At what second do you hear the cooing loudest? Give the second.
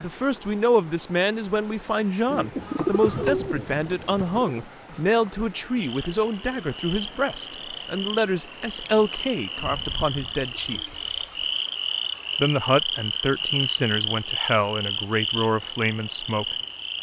3 s.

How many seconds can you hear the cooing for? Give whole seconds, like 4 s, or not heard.
4 s.